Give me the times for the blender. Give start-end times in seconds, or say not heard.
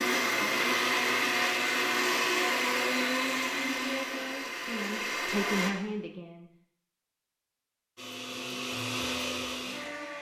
0.0-5.7, 8.0-10.1.